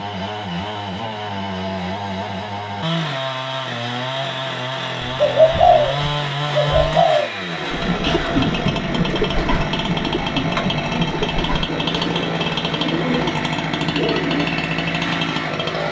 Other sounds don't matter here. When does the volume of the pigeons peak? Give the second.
6 s.